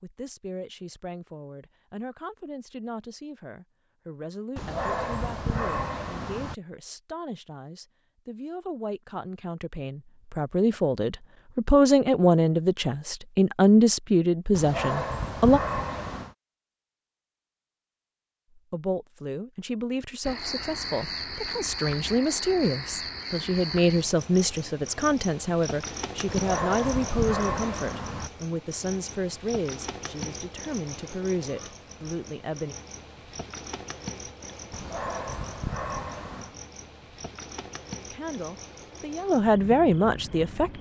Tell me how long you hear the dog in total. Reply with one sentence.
You can hear the dog for 8 seconds altogether.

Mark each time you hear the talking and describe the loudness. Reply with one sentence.
You can hear the talking from 0.0 to 15.6 s, getting louder; from 18.6 to 32.8 s, getting louder then quieter; and briefly from 38.1 to 40.7 s.